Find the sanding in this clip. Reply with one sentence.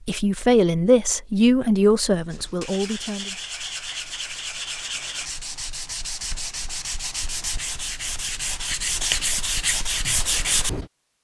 You can hear the sanding from 2.3 to 10.8 s.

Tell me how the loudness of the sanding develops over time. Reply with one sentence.
The loudness of the sanding goes up.